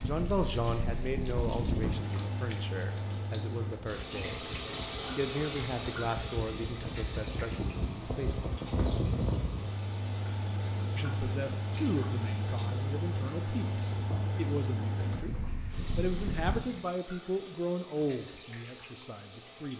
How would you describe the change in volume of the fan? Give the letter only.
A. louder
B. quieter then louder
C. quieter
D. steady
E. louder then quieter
B.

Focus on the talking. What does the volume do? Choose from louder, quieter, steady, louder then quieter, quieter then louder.
steady.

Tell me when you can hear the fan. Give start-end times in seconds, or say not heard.
0.0-16.6.